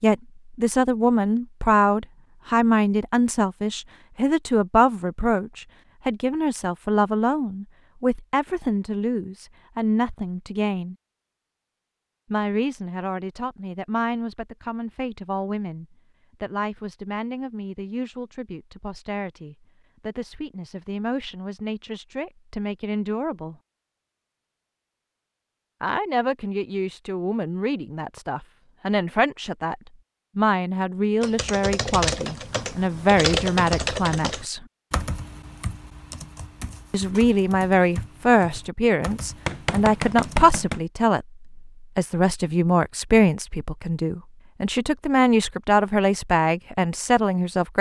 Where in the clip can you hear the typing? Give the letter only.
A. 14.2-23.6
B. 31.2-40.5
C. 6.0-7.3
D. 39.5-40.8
B.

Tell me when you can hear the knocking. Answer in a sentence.
The knocking can be heard from 39.5 to 40.8 s.